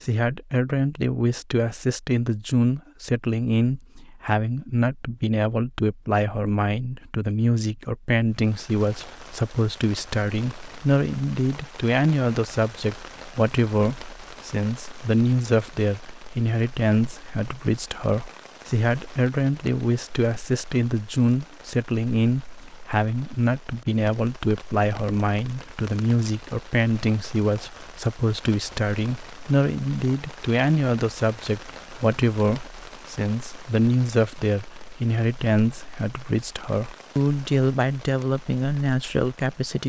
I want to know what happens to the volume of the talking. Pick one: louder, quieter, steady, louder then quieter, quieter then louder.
steady.